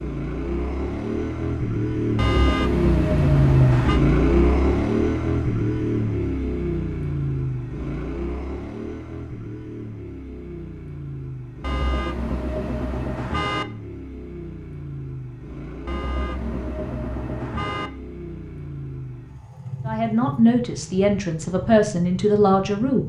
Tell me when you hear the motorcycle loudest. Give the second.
4 s.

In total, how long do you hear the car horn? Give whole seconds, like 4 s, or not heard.
6 s.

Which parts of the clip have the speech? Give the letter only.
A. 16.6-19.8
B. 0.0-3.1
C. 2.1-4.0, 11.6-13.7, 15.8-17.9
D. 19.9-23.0
D.